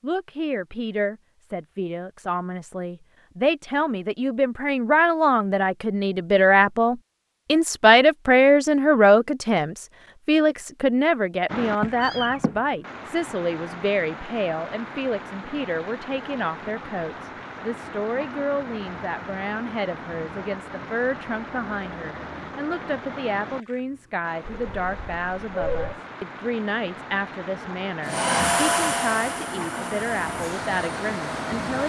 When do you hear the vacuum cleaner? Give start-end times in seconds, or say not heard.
28.0-31.8.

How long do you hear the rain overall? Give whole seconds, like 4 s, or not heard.
20 s.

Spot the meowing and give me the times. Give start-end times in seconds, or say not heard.
11.8-12.6, 24.4-26.0.